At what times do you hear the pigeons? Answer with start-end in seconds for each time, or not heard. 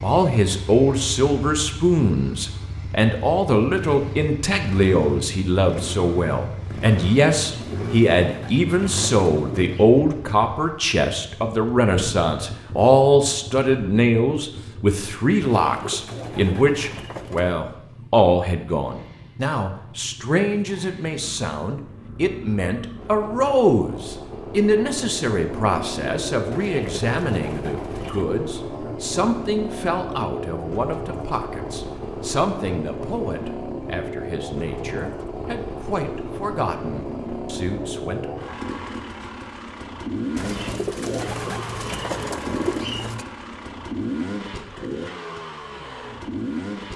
7.4-9.9, 15.4-17.6, 26.5-28.2, 40.4-43.2.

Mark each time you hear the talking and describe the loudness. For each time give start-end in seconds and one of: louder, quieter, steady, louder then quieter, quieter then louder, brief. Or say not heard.
0.0-38.3 quieter.